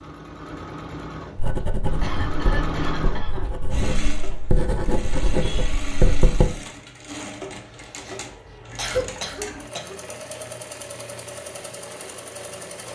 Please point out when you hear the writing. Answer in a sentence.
You can hear the writing from 1.4 to 6.5 s.